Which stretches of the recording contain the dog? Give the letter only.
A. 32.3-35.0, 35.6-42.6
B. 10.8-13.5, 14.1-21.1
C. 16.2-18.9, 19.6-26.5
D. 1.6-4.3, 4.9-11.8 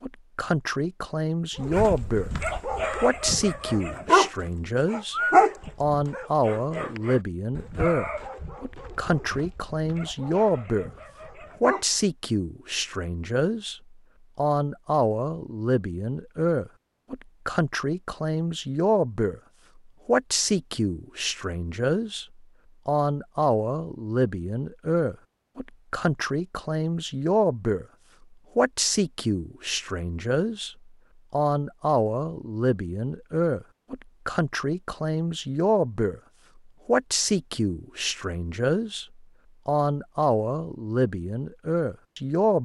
D.